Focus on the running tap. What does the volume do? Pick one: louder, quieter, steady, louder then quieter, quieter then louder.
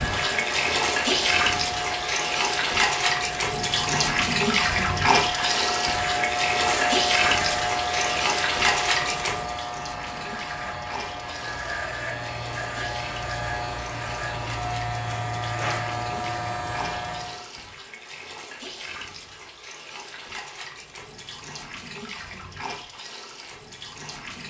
quieter.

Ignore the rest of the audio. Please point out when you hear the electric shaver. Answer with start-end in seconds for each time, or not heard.
0.0-17.4.